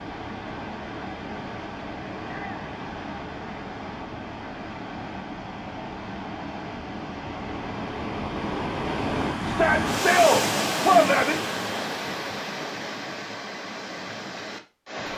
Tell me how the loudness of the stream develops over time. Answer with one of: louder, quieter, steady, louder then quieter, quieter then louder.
louder then quieter.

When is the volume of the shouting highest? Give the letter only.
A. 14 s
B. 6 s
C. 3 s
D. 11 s
D.